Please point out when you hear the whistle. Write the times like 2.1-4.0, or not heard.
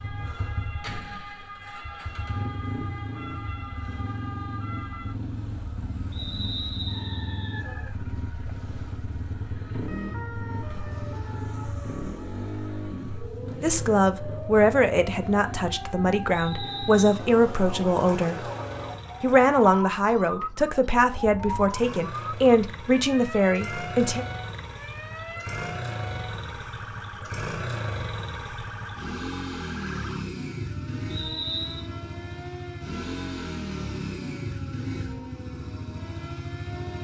6.1-7.7, 16.3-17.3, 31.1-31.9.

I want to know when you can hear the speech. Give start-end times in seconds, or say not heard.
13.6-18.4, 19.2-24.2.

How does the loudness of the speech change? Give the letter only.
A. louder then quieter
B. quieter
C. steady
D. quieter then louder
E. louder
C.